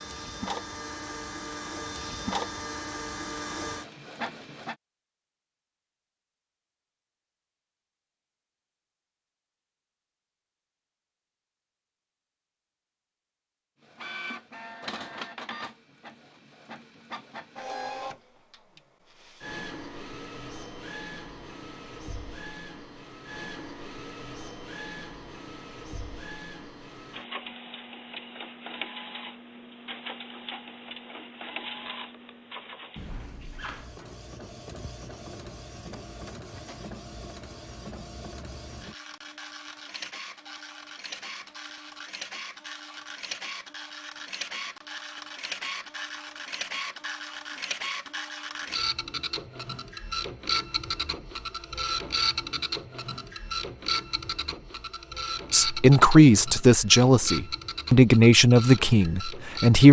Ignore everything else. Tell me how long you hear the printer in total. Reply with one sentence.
You can hear the printer for 51 seconds altogether.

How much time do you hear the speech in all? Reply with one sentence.
The speech can be heard for 4 seconds in total.